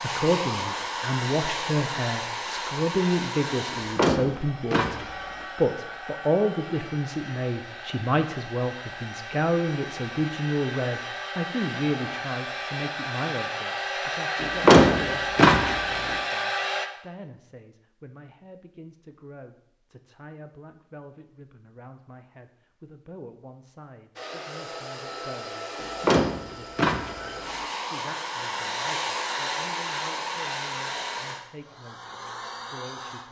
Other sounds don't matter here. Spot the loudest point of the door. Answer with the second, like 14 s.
15 s.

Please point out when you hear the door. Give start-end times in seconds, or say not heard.
3.7-5.5, 14.4-16.1, 25.8-27.6.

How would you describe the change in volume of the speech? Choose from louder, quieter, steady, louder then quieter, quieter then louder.
quieter.